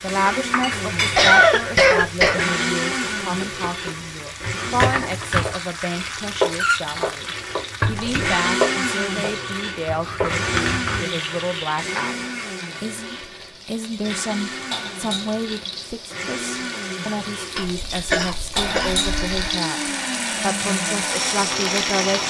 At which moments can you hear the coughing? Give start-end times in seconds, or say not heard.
0.7-2.5, 7.8-8.3, 17.6-19.6.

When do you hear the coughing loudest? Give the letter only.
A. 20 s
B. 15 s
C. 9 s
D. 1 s
D.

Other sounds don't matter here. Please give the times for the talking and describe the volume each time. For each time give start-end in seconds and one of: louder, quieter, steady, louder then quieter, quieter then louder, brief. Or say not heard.
0.0-22.2 steady.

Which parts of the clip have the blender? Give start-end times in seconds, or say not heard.
0.1-5.0, 7.2-22.2.